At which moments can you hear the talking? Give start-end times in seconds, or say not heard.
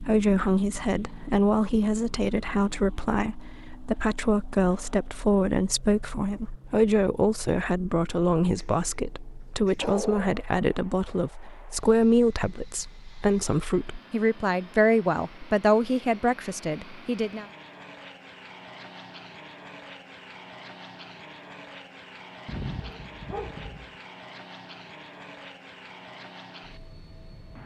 0.0-17.4.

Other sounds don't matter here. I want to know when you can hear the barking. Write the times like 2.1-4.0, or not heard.
8.6-10.5, 22.4-23.9.